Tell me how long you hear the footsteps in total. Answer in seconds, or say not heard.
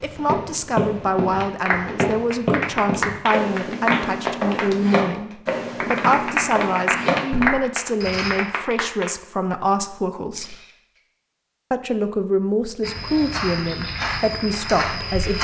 11 s.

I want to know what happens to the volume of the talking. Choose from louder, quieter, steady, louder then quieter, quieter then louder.
steady.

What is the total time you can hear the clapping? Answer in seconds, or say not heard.
8 s.